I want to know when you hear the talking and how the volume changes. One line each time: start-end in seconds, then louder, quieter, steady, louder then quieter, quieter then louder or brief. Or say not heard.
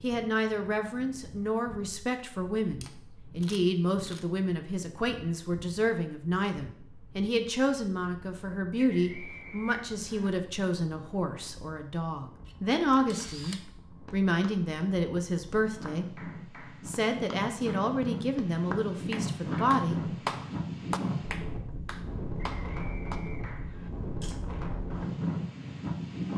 0.0-20.6 steady.